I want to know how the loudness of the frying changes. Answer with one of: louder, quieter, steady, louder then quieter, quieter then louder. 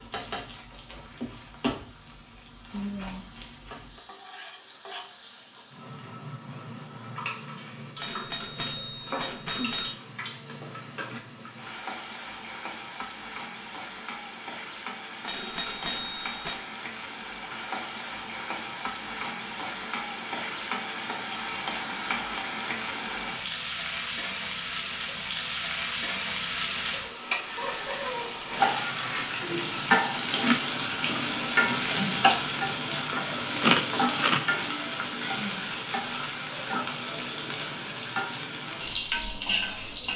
louder.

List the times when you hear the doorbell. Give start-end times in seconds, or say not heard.
8.0-9.9, 15.2-16.6, 27.4-27.9.